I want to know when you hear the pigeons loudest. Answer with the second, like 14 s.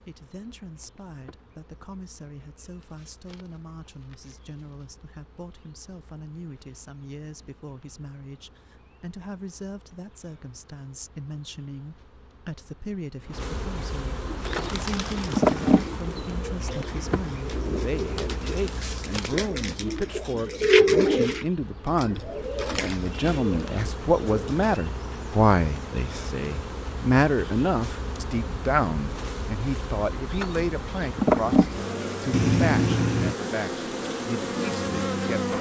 21 s.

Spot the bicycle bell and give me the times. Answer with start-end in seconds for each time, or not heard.
32.3-33.4.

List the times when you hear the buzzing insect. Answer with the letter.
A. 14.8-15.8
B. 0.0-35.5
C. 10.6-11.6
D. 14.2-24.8
B.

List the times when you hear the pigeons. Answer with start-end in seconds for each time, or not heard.
14.2-24.8.